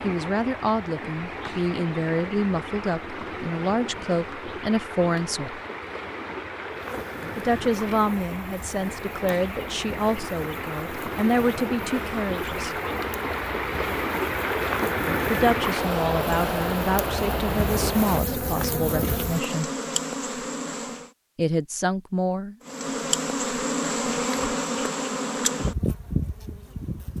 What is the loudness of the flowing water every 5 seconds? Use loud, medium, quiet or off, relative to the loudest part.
medium, medium, loud, loud, off, off.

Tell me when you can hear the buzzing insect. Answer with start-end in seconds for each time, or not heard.
6.7-21.1, 22.6-27.1.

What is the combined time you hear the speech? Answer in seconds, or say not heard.
17 s.